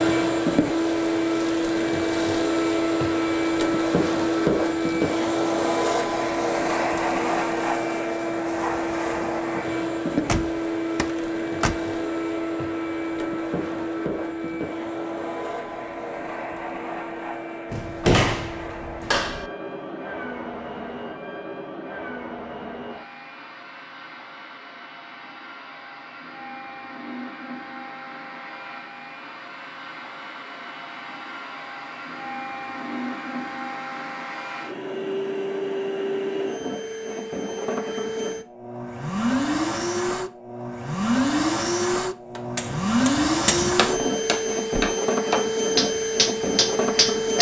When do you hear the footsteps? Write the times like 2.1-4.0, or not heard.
not heard.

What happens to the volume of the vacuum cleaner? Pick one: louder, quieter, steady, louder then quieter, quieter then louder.
quieter then louder.